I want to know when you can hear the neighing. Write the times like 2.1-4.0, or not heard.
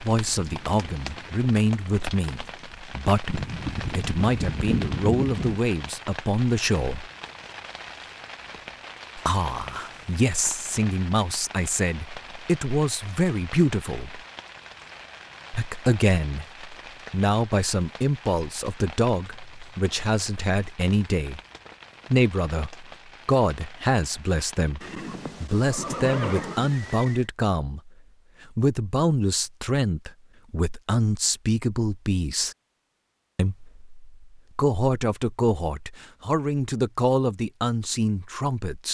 3.2-5.6, 24.8-27.2.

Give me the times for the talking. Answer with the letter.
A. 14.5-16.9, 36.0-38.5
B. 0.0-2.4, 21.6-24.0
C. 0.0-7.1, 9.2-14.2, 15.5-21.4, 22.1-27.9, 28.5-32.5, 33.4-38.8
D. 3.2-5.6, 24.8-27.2
C.